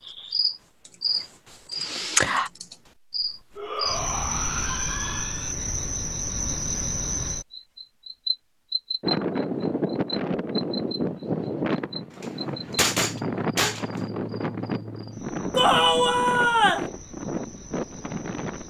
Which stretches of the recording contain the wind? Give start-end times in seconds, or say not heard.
9.0-18.6.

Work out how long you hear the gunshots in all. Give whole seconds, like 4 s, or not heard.
2 s.